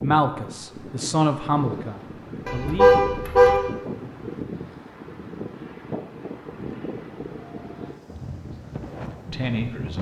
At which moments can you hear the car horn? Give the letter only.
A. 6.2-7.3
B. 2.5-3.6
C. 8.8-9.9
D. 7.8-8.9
B.